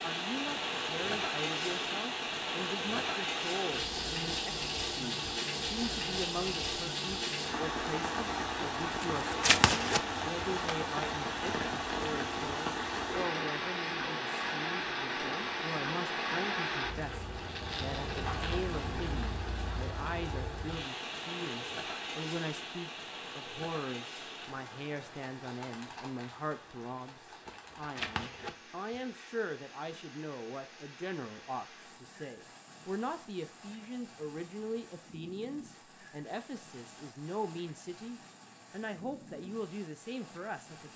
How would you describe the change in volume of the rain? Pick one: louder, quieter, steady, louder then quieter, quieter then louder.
quieter.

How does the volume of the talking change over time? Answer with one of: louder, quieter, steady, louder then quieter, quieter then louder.
steady.